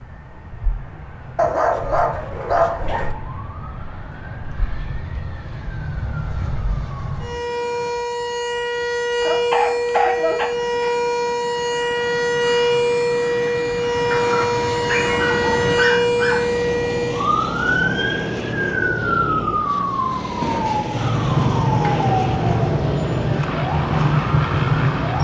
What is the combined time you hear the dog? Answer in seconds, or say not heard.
8 s.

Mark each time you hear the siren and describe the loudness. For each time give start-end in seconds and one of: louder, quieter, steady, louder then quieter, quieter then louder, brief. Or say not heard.
0.0-25.1 louder.